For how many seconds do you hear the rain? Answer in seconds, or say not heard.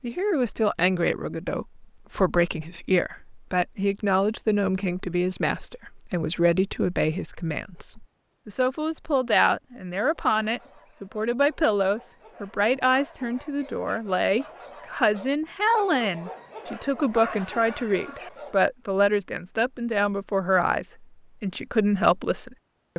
not heard.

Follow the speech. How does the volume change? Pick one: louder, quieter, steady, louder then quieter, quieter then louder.
steady.